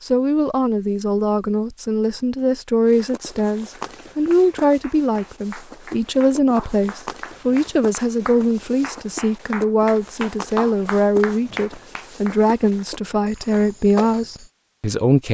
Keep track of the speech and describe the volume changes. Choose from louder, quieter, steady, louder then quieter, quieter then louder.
steady.